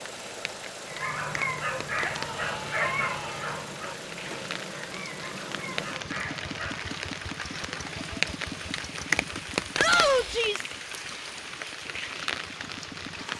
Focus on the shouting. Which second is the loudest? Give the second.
10 s.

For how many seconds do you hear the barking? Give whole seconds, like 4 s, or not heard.
6 s.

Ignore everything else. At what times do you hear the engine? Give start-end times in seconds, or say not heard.
0.0-13.3.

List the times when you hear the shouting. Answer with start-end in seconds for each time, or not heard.
2.0-3.6, 9.8-10.7.